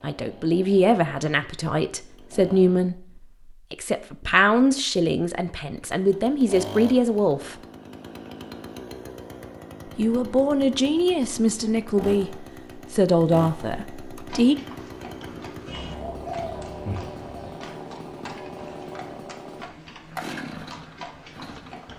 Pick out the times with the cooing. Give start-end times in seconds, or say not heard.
15.7-17.6.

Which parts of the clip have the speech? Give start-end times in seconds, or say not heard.
0.0-7.5, 9.9-14.6.